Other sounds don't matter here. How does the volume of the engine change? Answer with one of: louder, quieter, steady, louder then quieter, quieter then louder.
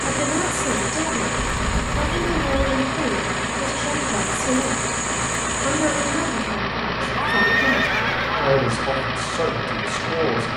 steady.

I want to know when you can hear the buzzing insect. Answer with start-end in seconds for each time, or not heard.
0.0-6.5.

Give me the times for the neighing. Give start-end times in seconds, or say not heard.
1.4-2.9, 7.2-8.7.